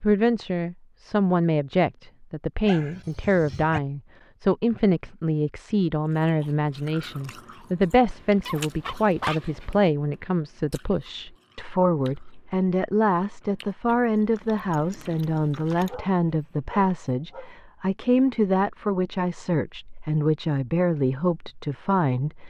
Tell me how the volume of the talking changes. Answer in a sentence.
The loudness of the talking stays about the same.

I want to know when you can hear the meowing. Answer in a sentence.
The meowing can't be heard in this clip.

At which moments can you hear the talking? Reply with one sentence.
You can hear the talking from 0.0 to 22.4 s.